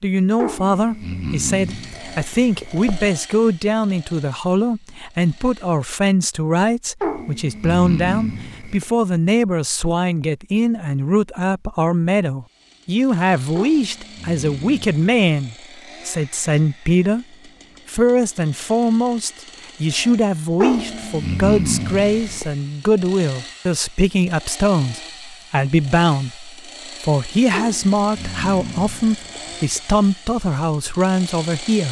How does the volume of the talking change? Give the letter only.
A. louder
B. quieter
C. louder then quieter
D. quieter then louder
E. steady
E.